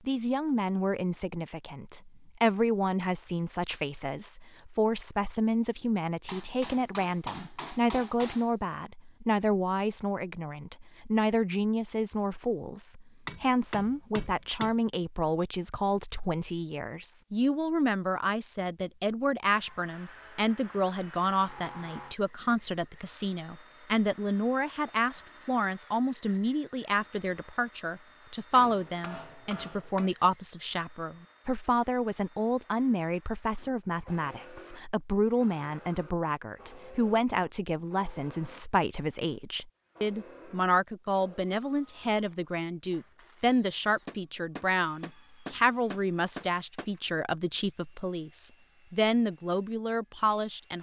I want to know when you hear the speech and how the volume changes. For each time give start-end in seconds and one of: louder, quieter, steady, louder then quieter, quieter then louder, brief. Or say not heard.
0.1-50.7 steady.